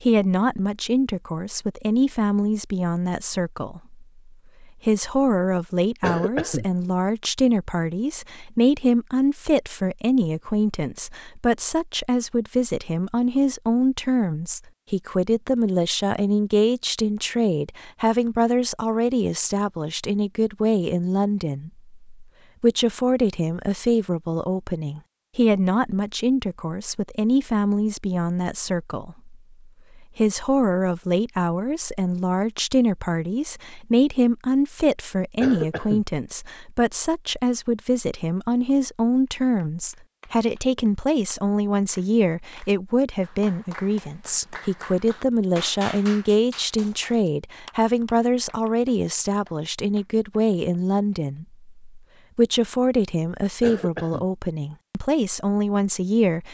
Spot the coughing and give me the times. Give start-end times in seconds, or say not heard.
6.0-6.7, 35.4-36.0, 53.6-54.2.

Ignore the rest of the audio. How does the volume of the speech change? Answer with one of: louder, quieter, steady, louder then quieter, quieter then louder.
steady.